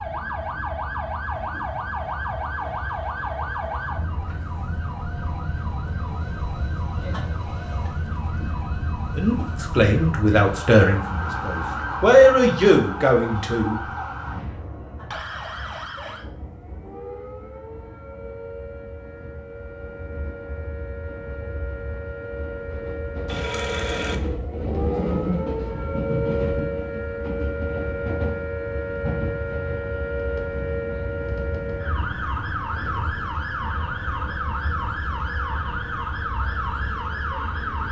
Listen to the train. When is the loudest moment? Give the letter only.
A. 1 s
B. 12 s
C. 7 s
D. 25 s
D.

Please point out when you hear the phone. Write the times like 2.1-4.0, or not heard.
23.2-24.1.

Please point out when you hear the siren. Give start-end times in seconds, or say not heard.
0.0-37.8.